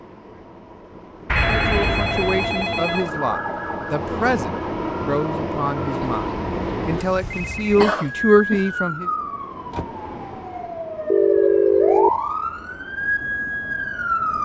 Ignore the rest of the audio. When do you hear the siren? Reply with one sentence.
You can hear the siren from 2.8 to 5.8 s and from 8.1 to 14.4 s.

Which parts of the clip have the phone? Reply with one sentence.
The phone can be heard from 1.2 to 3.1 s, from 6.0 to 8.0 s and from 11.1 to 12.1 s.